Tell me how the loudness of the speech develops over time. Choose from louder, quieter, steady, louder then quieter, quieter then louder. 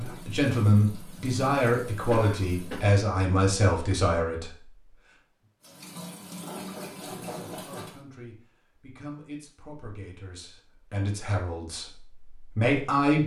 quieter then louder.